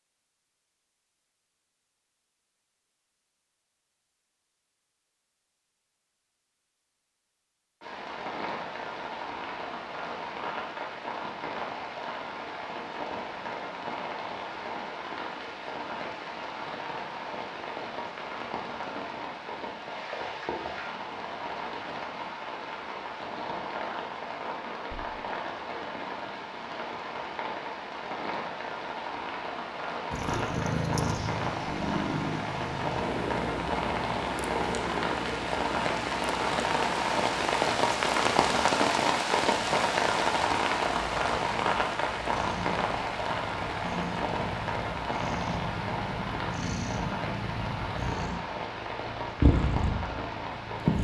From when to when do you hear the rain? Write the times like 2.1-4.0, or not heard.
7.8-50.9.